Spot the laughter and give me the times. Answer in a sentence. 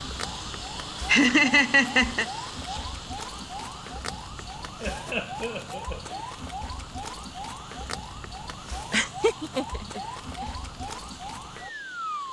The laughter can be heard from 1.1 to 2.2 s, from 4.8 to 6.2 s and from 8.9 to 10.4 s.